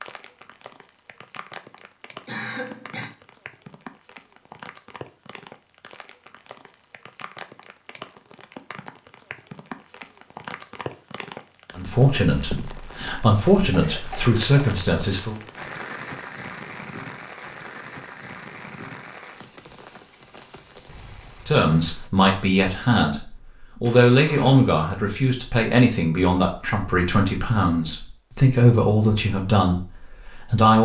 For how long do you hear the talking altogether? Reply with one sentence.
The talking can be heard for 13 seconds in total.